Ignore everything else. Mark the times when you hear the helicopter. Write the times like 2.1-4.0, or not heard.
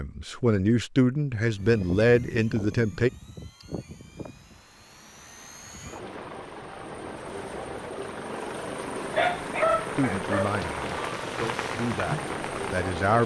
1.5-13.2.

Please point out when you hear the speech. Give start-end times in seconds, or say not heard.
0.0-3.1, 9.9-13.2.